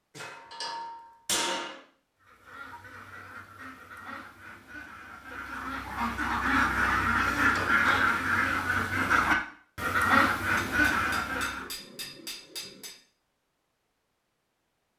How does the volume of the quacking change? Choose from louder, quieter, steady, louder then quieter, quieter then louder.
louder.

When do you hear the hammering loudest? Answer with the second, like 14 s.
1 s.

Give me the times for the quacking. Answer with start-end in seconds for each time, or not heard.
2.2-11.7.